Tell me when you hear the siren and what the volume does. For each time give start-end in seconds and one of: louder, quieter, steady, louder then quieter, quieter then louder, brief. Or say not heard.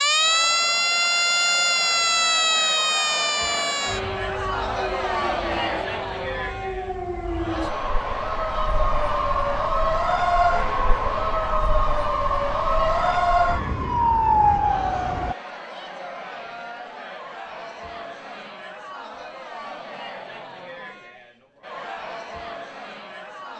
0.0-15.3 quieter then louder.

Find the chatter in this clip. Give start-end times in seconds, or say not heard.
0.0-23.5.